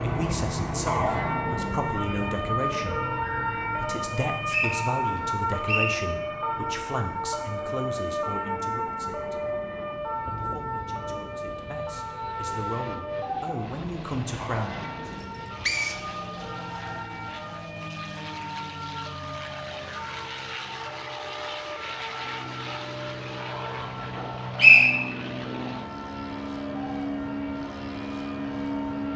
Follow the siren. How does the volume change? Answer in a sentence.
The volume of the siren goes down.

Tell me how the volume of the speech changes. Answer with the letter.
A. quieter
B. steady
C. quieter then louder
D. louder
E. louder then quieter
C.